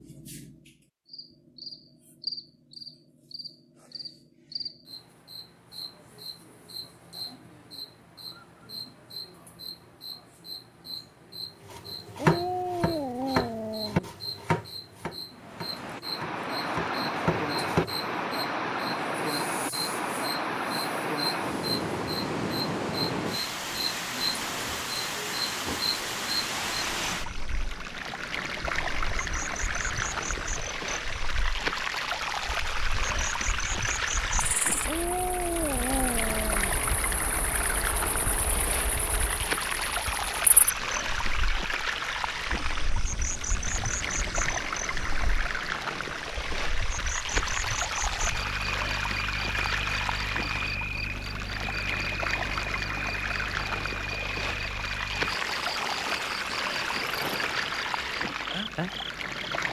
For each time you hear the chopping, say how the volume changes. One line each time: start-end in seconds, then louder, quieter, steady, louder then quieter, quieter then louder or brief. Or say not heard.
11.7-17.9 quieter then louder.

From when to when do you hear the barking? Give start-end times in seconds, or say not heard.
12.2-14.2, 34.9-36.8.